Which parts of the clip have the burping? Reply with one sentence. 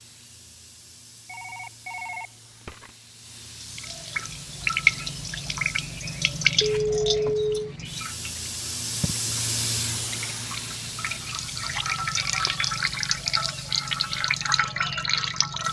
The burping can't be heard in this clip.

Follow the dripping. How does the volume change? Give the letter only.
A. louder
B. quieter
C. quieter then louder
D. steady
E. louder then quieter
C.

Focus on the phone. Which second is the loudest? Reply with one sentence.
The volume of the phone peaks at 7 seconds.